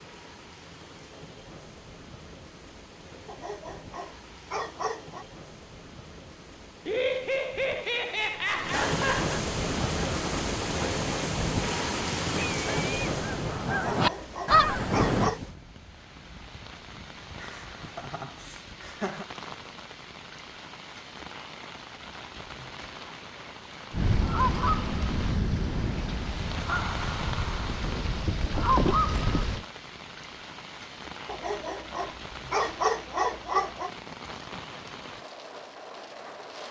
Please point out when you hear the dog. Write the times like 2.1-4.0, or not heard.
3.2-5.2, 13.9-15.4, 31.2-33.9.